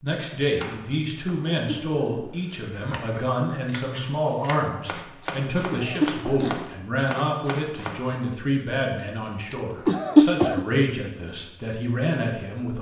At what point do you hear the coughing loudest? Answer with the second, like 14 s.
10 s.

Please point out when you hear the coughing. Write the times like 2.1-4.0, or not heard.
1.5-2.2, 5.7-6.5, 9.8-10.6.